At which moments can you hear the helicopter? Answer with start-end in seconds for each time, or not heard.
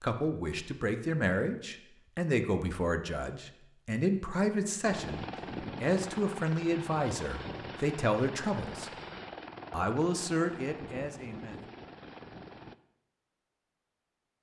4.8-12.8.